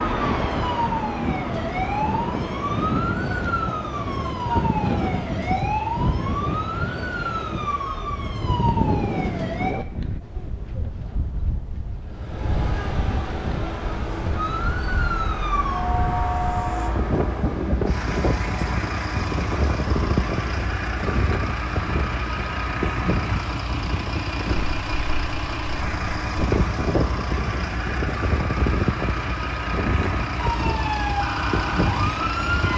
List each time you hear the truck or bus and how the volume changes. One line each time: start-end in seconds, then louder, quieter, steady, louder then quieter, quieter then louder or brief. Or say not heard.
12.1-32.7 steady.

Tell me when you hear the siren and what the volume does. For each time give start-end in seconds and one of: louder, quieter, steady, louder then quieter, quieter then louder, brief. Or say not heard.
0.0-9.8 steady
14.3-16.9 brief
30.4-32.7 brief.